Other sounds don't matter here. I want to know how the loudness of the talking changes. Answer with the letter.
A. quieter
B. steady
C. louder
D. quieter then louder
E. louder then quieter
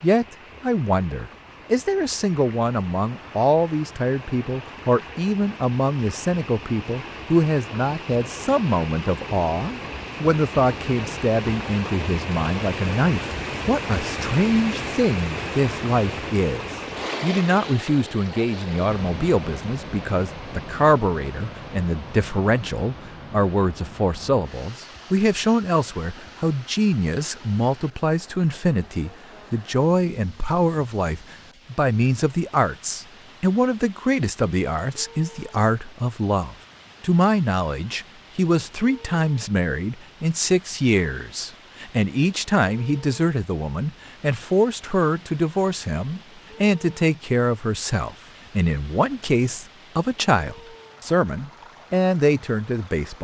B.